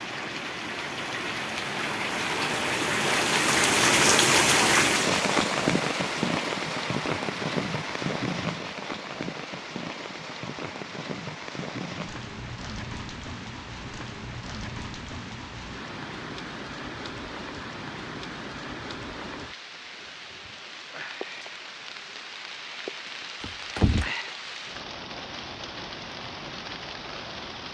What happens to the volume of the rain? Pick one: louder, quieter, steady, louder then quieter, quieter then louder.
quieter.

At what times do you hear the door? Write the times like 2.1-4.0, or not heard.
23.4-24.1.